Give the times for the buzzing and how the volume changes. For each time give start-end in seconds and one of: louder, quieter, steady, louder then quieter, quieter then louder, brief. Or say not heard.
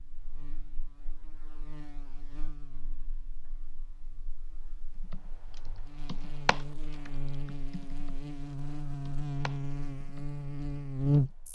0.0-11.5 quieter then louder.